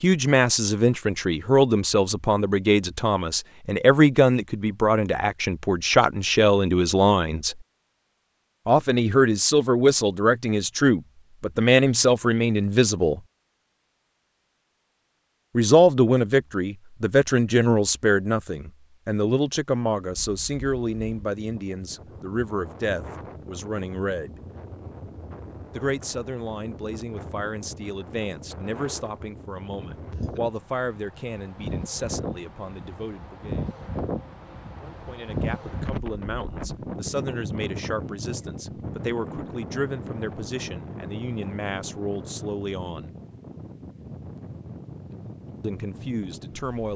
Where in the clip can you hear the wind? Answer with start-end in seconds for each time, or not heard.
20.0-46.9.